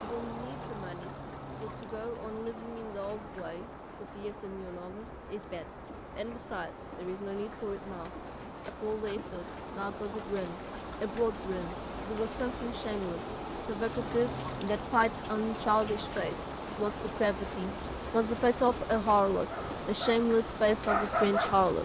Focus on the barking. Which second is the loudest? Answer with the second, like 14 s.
21 s.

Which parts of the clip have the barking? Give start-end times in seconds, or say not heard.
19.5-21.8.